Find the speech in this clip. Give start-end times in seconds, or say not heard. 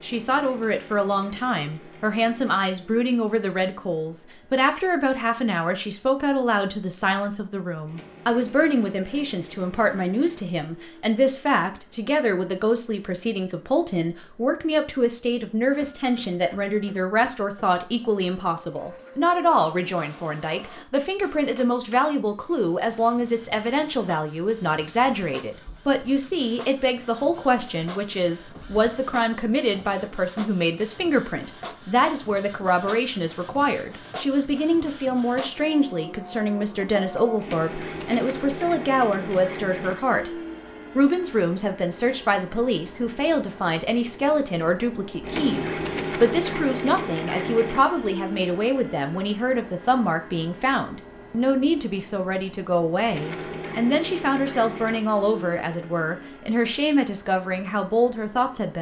0.0-58.7.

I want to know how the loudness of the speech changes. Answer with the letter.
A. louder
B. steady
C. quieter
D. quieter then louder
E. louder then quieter
B.